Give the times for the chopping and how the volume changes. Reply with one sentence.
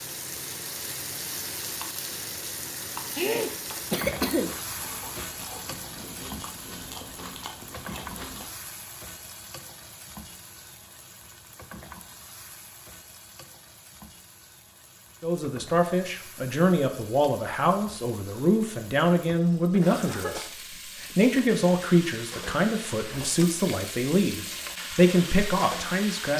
The chopping can't be heard in this clip.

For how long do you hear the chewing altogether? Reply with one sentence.
The chewing can be heard for 5 seconds in total.